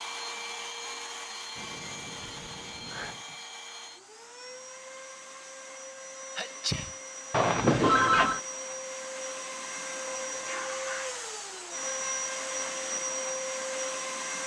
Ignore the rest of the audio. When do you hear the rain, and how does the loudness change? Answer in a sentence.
You can't hear the rain here.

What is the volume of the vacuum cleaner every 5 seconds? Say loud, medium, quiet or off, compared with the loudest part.
medium, medium, loud.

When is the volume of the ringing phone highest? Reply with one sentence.
The loudest moment of the ringing phone is at 8 seconds.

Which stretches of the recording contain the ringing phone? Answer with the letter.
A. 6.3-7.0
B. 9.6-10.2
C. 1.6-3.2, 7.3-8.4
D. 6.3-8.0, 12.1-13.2
C.